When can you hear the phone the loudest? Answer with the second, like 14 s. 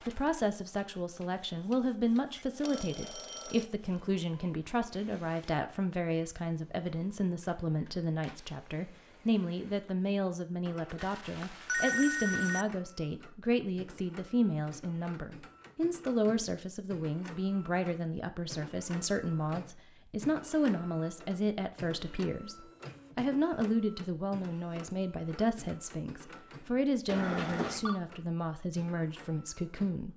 12 s.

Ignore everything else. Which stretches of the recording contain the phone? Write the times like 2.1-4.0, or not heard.
2.4-3.7, 10.9-12.7, 27.1-28.0.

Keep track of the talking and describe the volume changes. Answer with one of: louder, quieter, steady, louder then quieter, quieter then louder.
steady.